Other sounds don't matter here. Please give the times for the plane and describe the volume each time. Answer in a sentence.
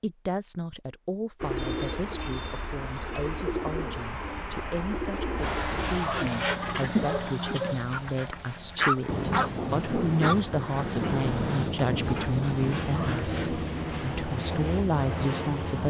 You can hear the plane from 5.3 to 15.8 s, getting quieter then louder.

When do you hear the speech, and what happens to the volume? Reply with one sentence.
You can hear the speech from 0.0 to 15.8 s, getting louder.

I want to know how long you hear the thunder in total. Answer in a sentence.
The thunder can be heard for 4 seconds in total.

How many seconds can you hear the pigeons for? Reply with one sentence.
The pigeons can be heard for 6 seconds in total.